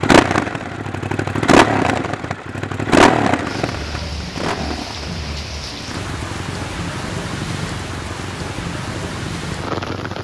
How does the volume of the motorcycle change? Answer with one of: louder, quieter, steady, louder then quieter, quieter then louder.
quieter.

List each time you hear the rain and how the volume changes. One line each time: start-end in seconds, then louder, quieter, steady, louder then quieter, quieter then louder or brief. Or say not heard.
3.4-10.1 steady.